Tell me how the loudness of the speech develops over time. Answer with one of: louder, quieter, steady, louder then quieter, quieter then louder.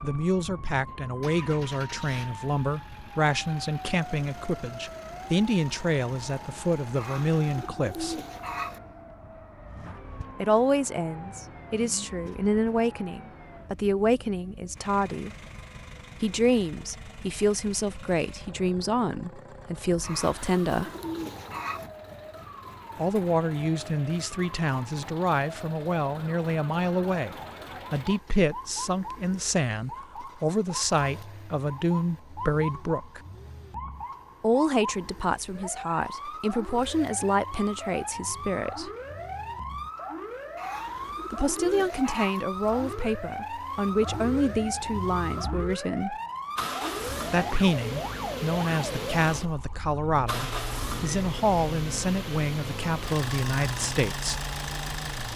steady.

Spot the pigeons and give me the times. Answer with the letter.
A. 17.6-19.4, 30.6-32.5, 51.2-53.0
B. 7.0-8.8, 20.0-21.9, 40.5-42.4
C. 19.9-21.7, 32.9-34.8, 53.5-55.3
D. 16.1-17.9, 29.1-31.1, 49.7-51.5
B.